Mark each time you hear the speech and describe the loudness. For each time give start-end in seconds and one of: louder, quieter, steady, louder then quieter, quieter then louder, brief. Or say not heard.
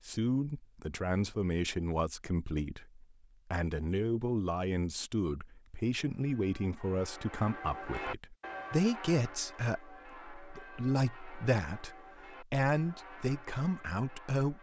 0.1-14.5 steady.